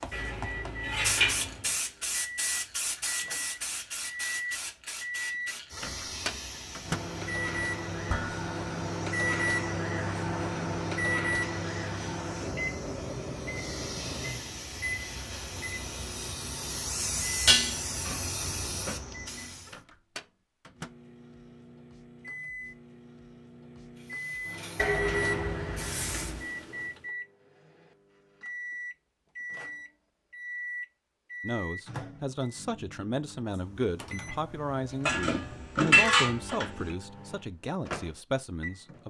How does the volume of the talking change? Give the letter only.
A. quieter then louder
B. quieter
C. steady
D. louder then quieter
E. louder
C.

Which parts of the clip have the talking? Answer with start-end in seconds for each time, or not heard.
31.4-39.0.